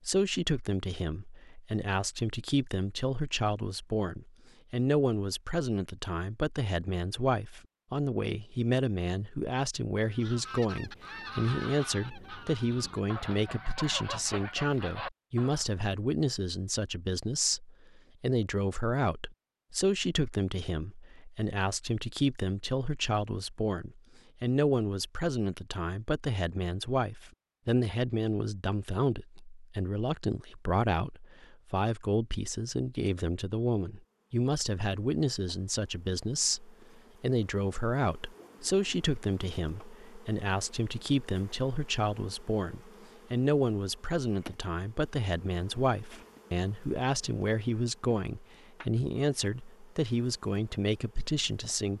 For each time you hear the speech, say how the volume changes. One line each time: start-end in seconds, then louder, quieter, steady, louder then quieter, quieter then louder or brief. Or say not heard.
0.1-51.9 steady.